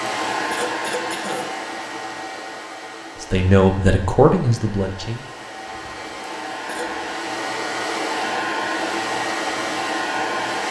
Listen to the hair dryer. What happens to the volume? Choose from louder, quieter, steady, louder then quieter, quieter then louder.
quieter then louder.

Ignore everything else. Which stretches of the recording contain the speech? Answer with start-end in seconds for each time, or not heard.
3.2-5.2.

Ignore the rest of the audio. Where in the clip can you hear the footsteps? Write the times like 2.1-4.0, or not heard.
not heard.